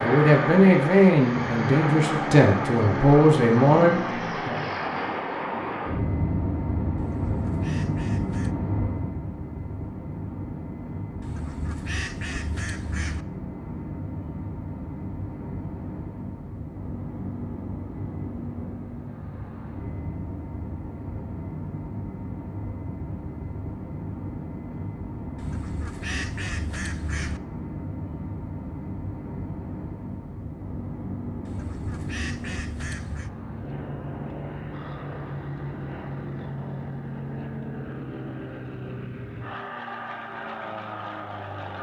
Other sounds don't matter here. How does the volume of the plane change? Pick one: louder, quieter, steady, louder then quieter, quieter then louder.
quieter.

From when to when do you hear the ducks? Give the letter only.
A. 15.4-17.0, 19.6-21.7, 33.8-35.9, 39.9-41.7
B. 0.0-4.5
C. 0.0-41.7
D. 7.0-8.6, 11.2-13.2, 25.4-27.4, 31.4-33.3
D.